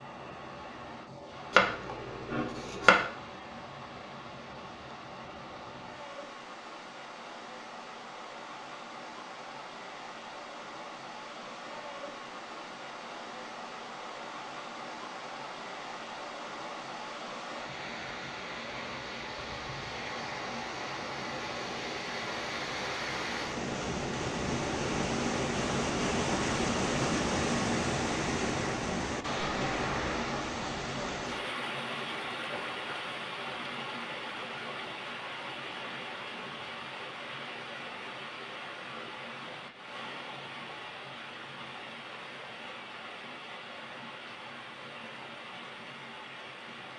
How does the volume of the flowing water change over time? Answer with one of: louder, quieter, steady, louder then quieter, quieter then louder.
louder then quieter.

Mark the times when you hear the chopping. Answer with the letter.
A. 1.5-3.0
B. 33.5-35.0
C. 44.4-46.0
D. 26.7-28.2
A.